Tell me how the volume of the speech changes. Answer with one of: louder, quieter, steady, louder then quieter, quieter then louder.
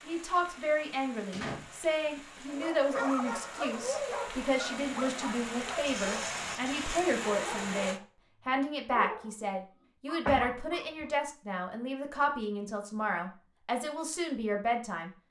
steady.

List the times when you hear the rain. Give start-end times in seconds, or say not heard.
0.0-8.0.